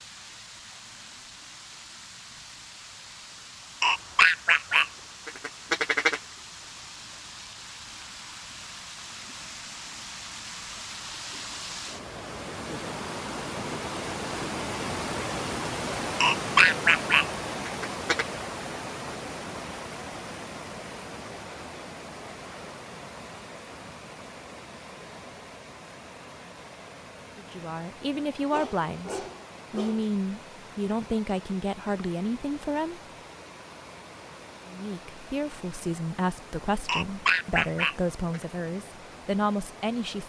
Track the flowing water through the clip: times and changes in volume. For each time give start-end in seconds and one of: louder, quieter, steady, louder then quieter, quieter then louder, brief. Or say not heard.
0.0-40.2 louder then quieter.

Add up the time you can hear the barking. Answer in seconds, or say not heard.
2 s.